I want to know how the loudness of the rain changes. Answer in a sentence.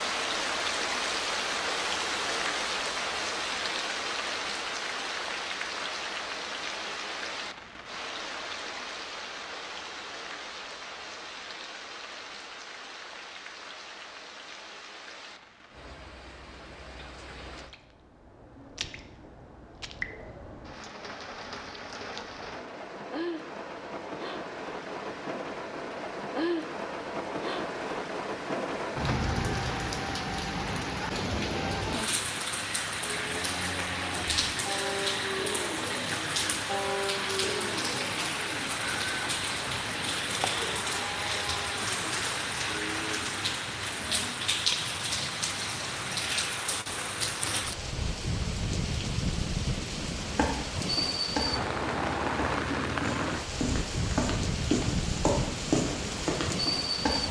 The loudness of the rain goes down, then up.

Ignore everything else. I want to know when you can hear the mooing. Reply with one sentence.
You can hear the mooing from 33.0 to 44.3 s.